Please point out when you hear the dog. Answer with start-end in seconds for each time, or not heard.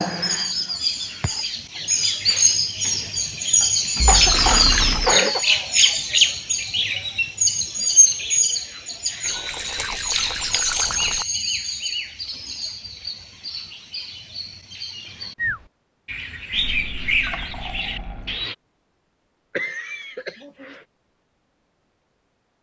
not heard.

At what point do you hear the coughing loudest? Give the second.
5 s.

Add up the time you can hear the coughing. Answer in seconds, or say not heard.
3 s.